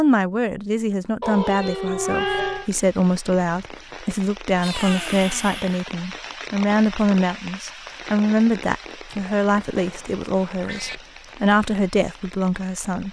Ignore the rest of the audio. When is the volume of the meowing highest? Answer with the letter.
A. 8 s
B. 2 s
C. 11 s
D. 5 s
B.